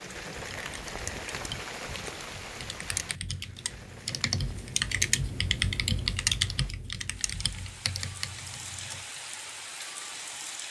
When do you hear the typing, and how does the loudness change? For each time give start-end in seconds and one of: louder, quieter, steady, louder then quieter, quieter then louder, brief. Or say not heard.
0.4-9.1 louder then quieter.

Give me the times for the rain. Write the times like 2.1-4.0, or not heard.
0.0-10.6.